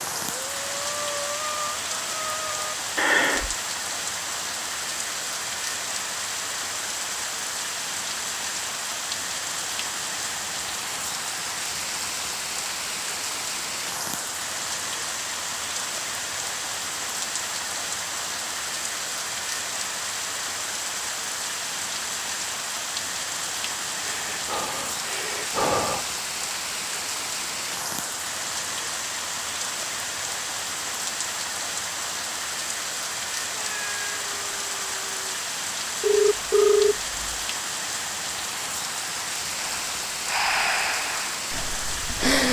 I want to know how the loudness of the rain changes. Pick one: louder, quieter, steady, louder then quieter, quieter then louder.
steady.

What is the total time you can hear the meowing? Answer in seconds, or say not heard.
2 s.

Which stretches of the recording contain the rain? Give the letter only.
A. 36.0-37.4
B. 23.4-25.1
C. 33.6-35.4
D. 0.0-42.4
D.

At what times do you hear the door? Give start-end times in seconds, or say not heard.
not heard.